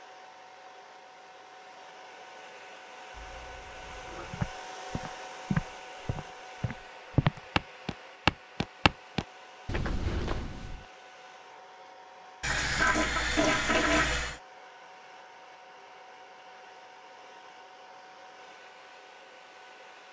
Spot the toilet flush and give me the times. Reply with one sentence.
The toilet flush can be heard from 3.1 to 4.5 s and from 12.4 to 14.4 s.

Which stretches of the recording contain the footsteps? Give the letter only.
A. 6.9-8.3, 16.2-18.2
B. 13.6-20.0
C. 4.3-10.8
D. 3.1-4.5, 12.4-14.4
C.